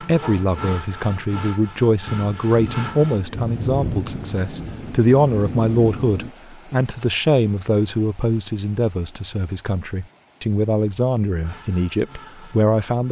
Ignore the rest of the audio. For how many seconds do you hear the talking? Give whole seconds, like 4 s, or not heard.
13 s.